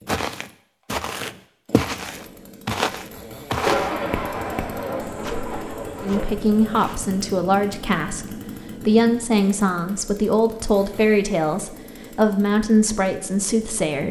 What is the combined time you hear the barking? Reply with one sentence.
You can't hear the barking here.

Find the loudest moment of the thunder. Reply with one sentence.
The loudest moment of the thunder is at 4 seconds.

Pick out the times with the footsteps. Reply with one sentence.
You can hear the footsteps from 0.1 to 7.0 s.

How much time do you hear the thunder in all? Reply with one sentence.
The thunder can be heard for 3 seconds in total.